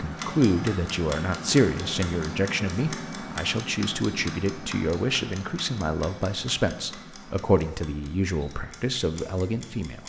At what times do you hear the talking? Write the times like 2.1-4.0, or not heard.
0.0-10.0.